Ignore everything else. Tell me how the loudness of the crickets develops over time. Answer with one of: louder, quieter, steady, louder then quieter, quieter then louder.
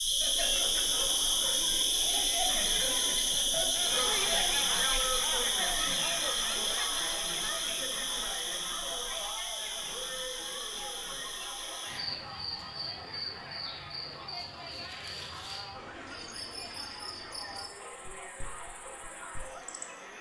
quieter.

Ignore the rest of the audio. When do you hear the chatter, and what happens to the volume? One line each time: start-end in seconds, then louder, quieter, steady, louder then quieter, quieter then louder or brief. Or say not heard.
0.0-20.1 quieter.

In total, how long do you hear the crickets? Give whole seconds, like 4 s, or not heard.
20 s.